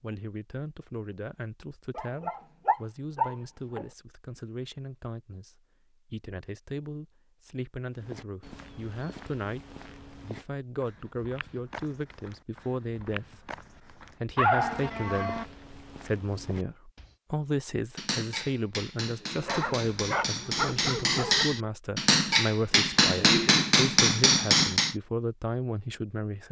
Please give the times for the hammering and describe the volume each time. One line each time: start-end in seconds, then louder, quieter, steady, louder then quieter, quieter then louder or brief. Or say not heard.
17.9-24.9 louder.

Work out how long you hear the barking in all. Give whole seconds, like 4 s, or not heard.
5 s.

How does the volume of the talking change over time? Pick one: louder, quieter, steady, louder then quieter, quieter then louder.
louder.